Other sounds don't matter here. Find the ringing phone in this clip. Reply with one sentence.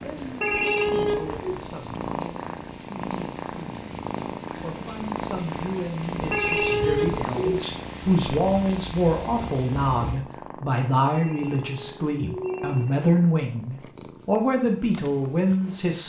You can hear the ringing phone from 0.4 to 1.4 s, from 6.3 to 7.6 s and from 11.1 to 12.9 s.